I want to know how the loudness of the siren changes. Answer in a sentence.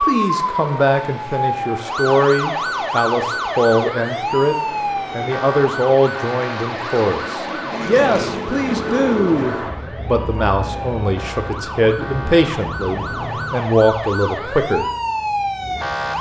The loudness of the siren goes down, then up.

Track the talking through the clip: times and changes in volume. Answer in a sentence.
You can hear the talking from 0.0 to 14.9 s, at a steady volume.